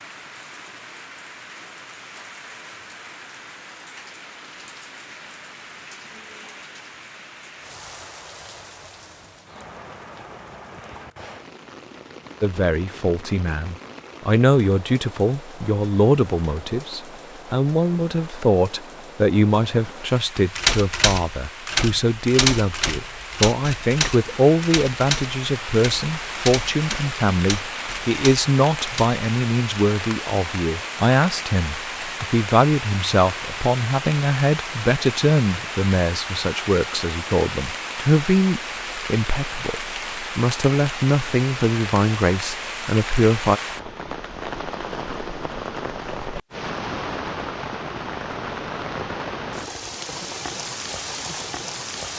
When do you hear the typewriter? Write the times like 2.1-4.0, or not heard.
20.6-29.1.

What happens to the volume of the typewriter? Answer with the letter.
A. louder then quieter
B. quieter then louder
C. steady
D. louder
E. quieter
E.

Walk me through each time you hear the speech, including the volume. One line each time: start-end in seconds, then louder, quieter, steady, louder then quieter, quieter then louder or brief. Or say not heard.
12.4-43.6 steady.